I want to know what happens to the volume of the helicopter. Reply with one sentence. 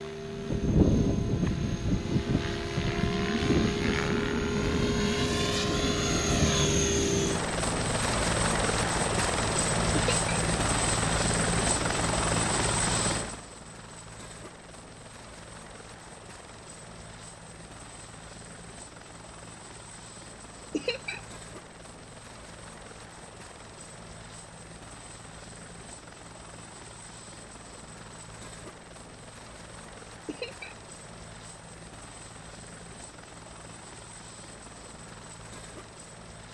The volume of the helicopter goes down.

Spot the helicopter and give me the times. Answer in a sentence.
The helicopter can be heard from 0.0 to 36.4 s.